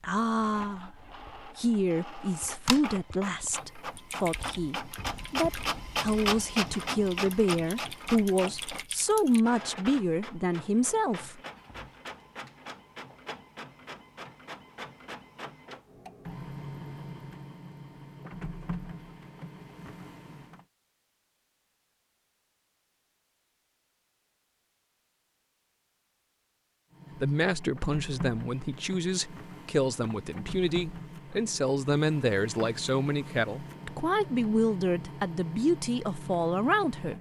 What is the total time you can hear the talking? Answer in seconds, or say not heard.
21 s.